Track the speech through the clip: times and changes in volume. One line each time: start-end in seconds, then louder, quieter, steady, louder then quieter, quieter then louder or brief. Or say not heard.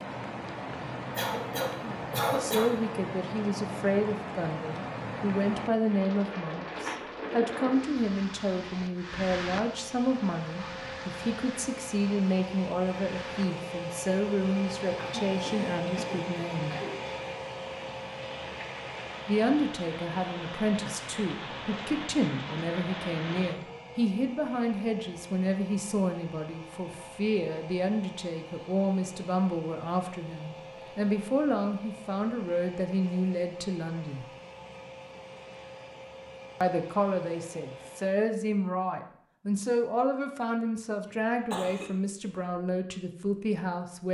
1.8-16.8 steady
19.2-34.2 steady
36.6-44.0 steady.